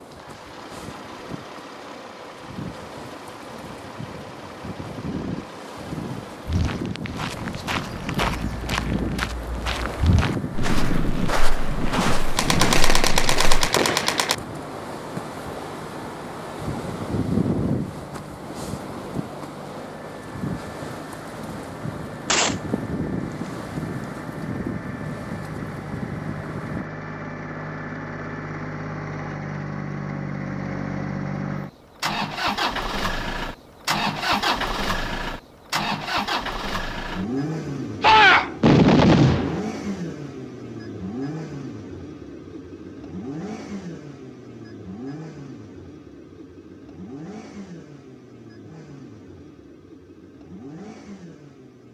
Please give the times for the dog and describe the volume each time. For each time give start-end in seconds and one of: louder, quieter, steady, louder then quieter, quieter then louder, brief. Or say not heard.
not heard.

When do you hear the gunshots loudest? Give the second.
38 s.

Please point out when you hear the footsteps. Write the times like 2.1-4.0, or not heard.
6.5-13.7.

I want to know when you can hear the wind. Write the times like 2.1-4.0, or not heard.
0.0-26.9.